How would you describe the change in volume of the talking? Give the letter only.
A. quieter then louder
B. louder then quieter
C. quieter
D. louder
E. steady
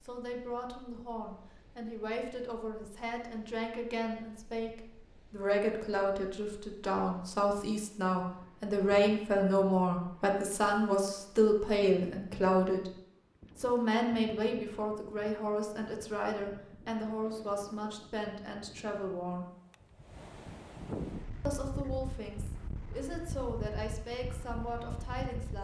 B.